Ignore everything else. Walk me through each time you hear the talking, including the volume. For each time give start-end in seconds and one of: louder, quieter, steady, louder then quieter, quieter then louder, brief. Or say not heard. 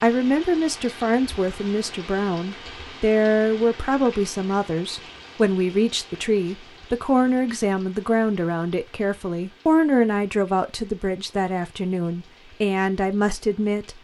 0.0-13.9 steady.